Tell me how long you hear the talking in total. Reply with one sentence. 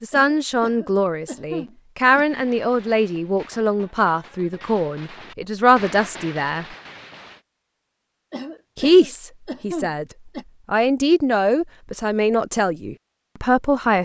You can hear the talking for 11 seconds altogether.